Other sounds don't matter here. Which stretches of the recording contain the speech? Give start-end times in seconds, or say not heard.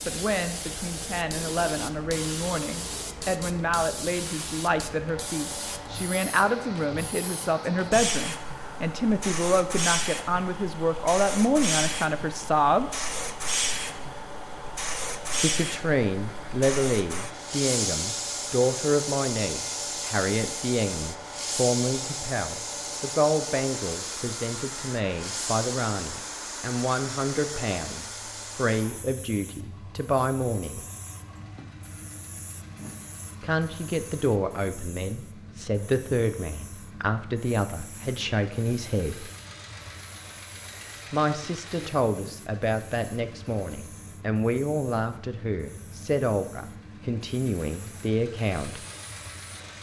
0.1-13.1, 15.3-30.9, 33.4-39.3, 41.1-48.9.